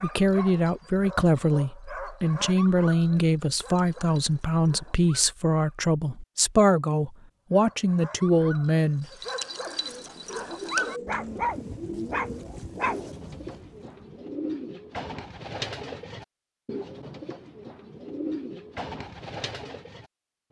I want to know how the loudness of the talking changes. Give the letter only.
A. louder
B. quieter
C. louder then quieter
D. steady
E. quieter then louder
D.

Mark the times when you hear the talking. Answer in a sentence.
The talking can be heard from 0.0 to 9.1 s.